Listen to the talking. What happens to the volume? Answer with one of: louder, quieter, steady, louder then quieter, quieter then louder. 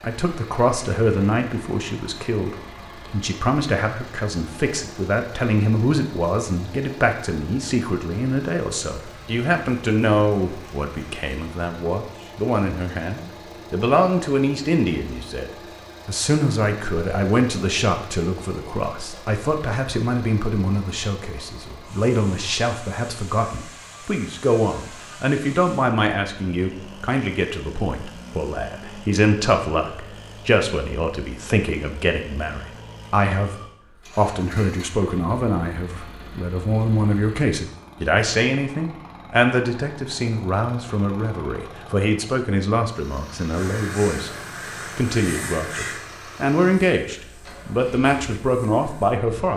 steady.